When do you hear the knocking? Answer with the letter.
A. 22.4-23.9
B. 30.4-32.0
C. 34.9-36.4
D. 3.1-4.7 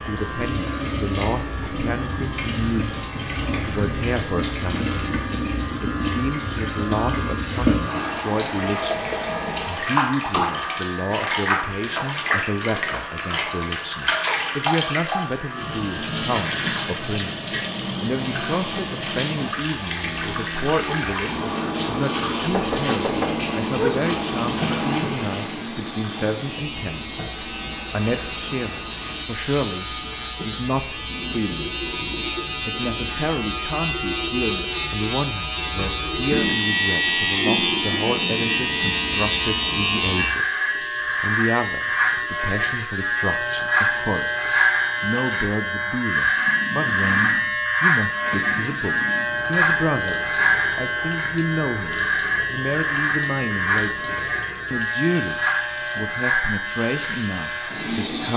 A.